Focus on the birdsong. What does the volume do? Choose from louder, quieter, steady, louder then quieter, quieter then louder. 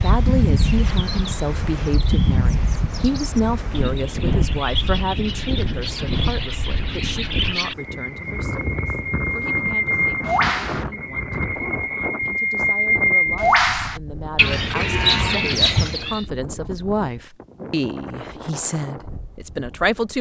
louder.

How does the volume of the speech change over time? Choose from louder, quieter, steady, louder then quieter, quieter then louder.
quieter then louder.